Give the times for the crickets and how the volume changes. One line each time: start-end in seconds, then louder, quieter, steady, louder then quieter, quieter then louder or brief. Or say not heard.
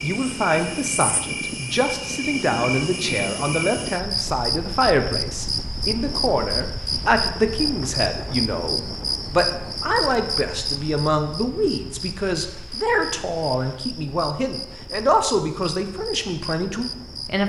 0.0-17.4 quieter.